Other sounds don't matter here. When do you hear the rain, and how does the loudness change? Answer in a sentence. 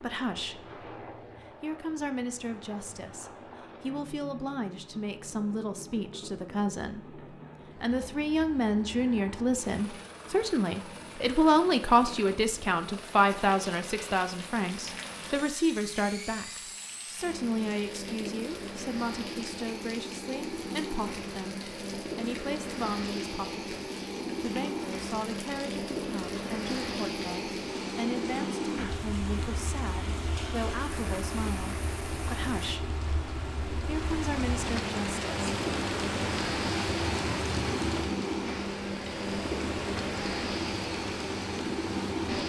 The rain can be heard from 13.3 to 42.4 s, getting louder.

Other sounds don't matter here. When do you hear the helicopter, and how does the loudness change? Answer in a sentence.
You can hear the helicopter from 0.0 to 42.4 s, getting louder.